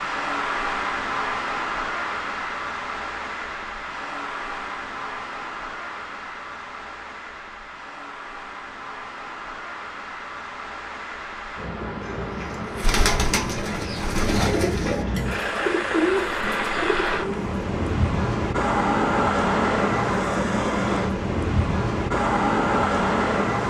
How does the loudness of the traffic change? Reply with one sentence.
The volume of the traffic goes down, then up.